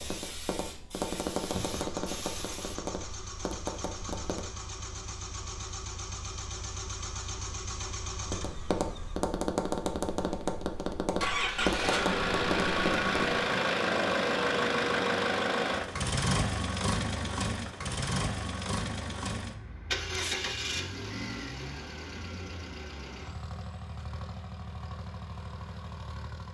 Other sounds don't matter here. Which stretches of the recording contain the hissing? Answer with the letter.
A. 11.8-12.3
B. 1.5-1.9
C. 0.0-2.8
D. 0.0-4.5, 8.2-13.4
C.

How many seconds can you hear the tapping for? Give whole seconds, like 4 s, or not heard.
10 s.